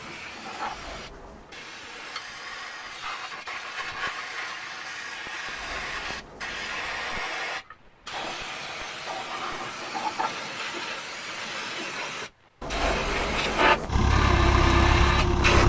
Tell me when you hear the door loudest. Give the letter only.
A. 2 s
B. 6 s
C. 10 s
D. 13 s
D.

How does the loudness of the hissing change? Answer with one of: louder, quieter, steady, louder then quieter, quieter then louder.
louder.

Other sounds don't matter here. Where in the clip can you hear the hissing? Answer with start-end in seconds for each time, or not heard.
0.0-15.6.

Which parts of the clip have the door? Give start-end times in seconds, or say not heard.
0.7-1.6, 5.5-7.2, 12.6-13.9.